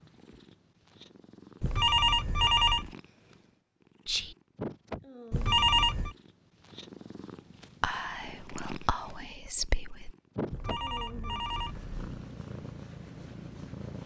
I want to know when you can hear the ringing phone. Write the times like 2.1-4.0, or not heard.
1.6-2.9, 5.3-6.2, 10.5-11.9.